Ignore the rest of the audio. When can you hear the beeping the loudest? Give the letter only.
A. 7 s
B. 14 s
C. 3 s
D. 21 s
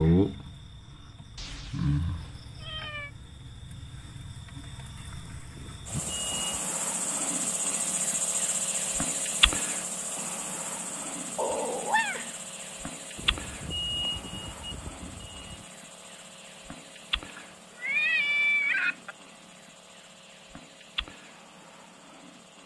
B.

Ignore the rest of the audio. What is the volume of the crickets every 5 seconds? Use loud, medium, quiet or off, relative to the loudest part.
loud, loud, medium, quiet, quiet.